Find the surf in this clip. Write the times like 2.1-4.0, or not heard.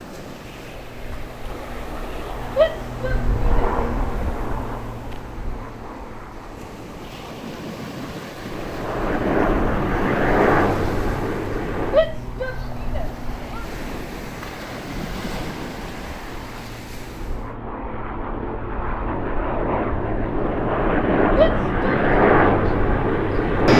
0.0-17.6.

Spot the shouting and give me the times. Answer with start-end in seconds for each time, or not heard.
2.5-3.7, 11.9-13.7, 21.4-22.0.